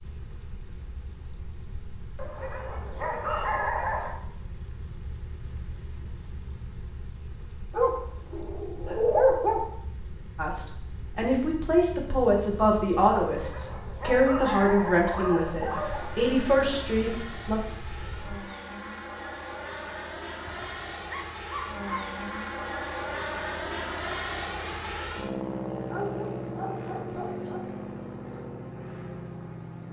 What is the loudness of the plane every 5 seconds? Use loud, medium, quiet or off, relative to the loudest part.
off, off, off, medium, loud, loud.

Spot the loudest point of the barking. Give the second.
9 s.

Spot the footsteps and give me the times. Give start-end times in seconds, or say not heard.
not heard.